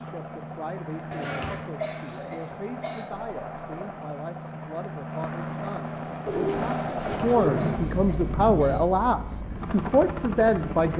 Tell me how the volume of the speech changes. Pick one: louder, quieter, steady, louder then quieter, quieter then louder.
louder.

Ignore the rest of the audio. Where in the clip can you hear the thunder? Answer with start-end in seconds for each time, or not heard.
7.0-8.8.